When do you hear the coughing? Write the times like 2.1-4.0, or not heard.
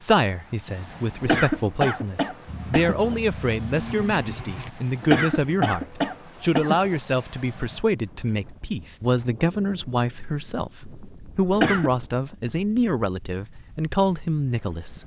1.2-3.1, 5.0-7.0, 11.5-11.9.